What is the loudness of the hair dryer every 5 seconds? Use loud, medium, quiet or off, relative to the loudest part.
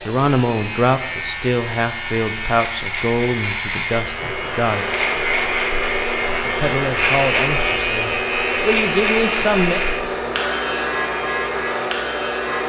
medium, loud, loud.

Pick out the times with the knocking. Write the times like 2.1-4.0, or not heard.
not heard.